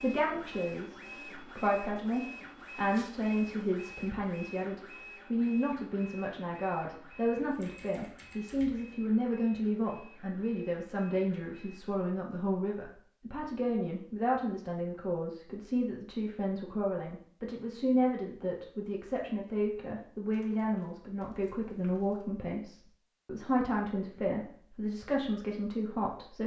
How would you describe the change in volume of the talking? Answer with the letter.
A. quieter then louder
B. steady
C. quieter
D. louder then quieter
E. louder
B.